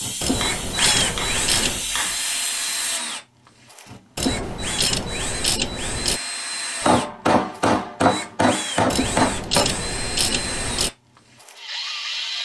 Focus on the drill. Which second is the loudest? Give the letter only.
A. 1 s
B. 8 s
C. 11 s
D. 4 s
A.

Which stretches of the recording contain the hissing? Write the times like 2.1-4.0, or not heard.
0.0-3.0.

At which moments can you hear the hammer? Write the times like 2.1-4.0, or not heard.
0.4-2.1, 6.8-9.7.